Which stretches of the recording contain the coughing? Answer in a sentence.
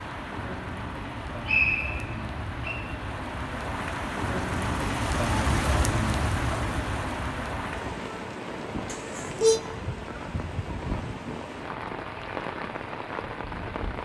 You can hear the coughing from 8.9 to 9.6 s.